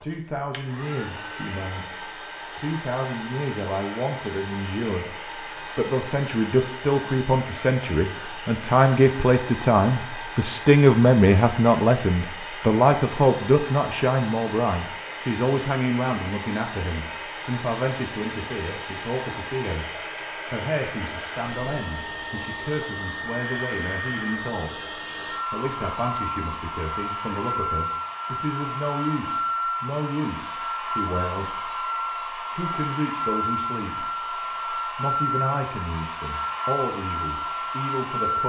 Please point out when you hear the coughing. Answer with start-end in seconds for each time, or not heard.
not heard.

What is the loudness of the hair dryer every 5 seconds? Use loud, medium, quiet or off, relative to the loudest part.
medium, medium, medium, medium, medium, loud, loud, loud.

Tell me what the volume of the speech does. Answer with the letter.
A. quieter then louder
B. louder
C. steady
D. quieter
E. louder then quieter
E.